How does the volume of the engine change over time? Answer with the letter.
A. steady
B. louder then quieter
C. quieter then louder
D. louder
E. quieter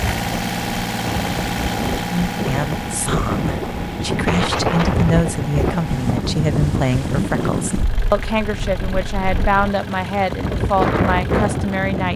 E.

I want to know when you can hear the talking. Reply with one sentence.
The talking can be heard from 2.1 to 12.1 s.